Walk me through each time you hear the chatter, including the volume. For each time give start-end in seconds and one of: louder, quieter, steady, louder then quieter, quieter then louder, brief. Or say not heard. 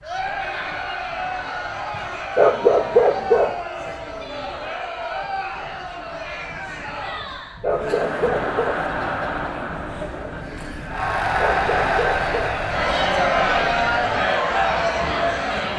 0.0-15.7 louder.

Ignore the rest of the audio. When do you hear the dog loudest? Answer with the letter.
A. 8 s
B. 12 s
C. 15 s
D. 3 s
D.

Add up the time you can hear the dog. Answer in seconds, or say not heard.
5 s.